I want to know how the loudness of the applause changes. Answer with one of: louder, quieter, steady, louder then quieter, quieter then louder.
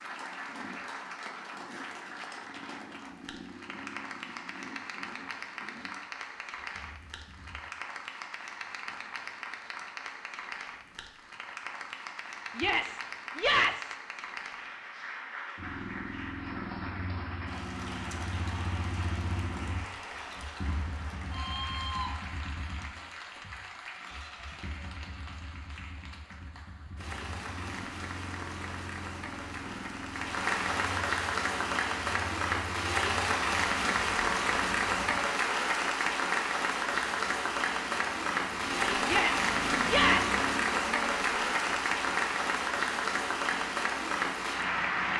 louder.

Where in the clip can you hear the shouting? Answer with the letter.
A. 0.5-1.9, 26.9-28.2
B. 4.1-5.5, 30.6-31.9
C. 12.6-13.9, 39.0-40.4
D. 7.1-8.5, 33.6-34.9
C.